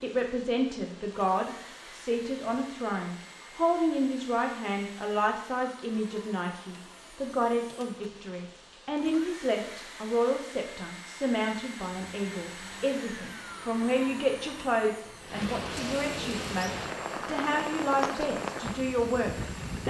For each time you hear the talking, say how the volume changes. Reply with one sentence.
You can hear the talking from 0.0 to 19.8 s, at a steady volume.